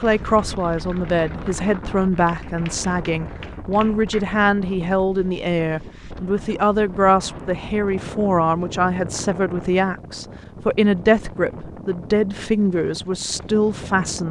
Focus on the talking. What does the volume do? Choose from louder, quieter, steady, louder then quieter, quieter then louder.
steady.